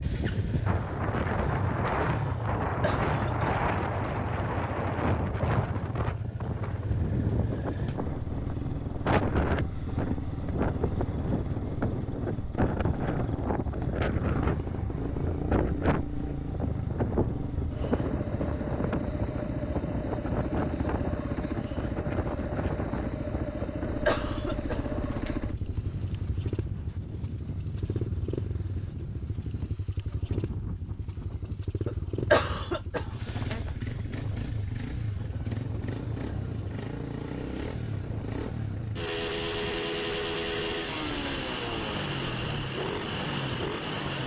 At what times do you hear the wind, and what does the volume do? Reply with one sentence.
You can hear the wind from 0.0 to 44.2 s, getting quieter.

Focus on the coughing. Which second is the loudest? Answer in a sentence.
The volume of the coughing peaks at 32 seconds.